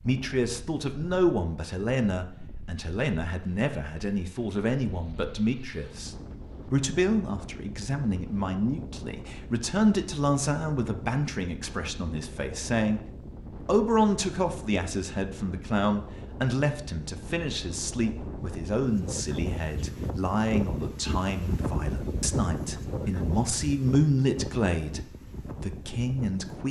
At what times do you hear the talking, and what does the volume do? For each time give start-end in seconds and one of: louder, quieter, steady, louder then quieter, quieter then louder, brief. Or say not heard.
0.1-26.6 steady.